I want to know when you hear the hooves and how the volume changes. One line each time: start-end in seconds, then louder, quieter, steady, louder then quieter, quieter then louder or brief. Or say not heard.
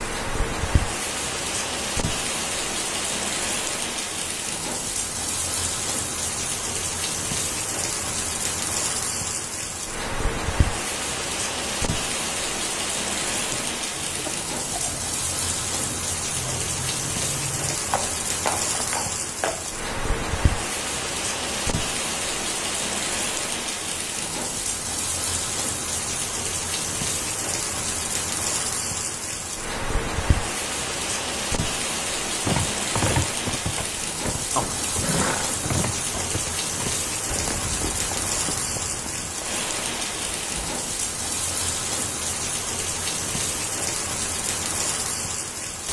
13.3-19.7 louder
32.5-40.7 quieter.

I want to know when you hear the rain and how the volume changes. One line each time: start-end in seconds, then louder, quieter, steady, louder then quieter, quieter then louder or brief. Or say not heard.
0.0-45.8 steady.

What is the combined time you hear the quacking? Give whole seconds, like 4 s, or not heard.
not heard.